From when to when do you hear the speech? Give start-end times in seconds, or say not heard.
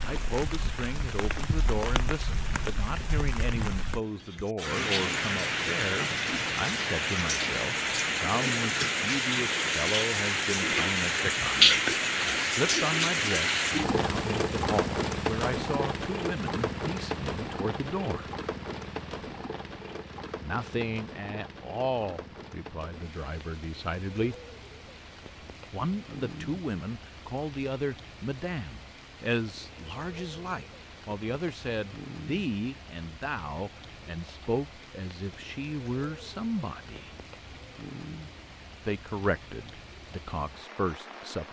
0.0-18.3, 20.4-24.4, 25.7-37.1, 38.9-41.4.